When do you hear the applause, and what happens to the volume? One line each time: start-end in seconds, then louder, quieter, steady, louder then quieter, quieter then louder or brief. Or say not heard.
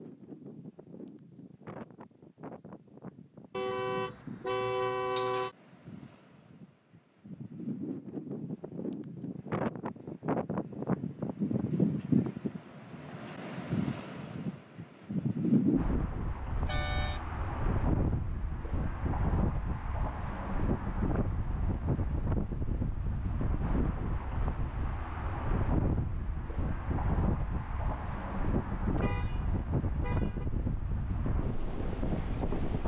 not heard.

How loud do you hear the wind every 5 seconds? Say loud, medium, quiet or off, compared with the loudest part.
quiet, medium, loud, loud, loud, loud, loud.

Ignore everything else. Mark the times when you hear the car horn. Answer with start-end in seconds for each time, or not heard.
3.5-5.5, 16.6-17.2, 28.9-30.4.